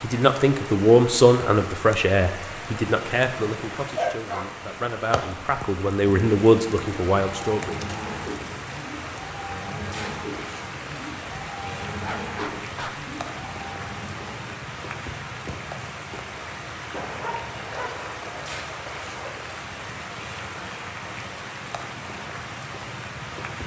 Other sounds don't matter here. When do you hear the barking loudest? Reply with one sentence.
The volume of the barking peaks at 4 seconds.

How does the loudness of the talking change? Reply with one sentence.
The loudness of the talking goes down, then up.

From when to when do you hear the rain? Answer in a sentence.
The rain can be heard from 0.0 to 23.6 s.